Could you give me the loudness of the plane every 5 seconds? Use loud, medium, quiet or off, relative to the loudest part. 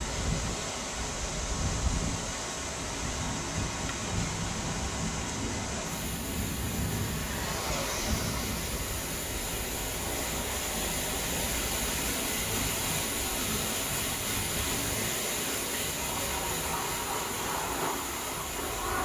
loud, loud, medium, loud.